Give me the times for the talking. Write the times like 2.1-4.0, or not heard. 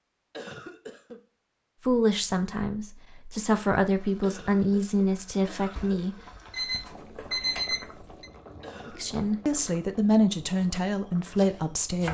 1.9-6.2, 8.8-12.0.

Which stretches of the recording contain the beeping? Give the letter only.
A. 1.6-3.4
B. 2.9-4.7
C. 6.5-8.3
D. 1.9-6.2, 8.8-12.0
C.